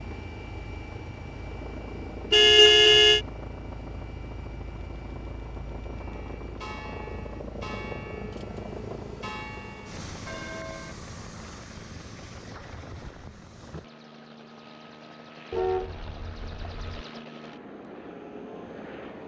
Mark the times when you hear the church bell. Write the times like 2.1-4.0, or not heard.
5.9-10.9.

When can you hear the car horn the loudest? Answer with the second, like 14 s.
3 s.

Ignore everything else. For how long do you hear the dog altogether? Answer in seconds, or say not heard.
not heard.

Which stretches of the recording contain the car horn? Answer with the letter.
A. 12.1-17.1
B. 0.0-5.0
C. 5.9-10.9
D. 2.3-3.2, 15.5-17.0
D.